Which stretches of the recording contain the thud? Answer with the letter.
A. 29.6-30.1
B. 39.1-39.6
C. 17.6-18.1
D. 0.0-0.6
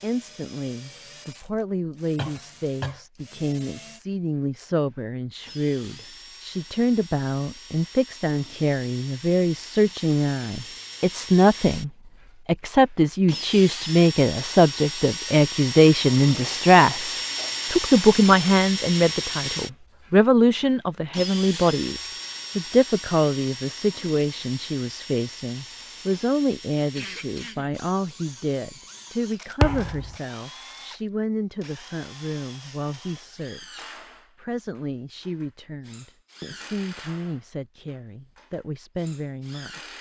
A.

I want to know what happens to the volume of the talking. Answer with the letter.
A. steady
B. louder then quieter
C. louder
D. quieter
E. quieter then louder
B.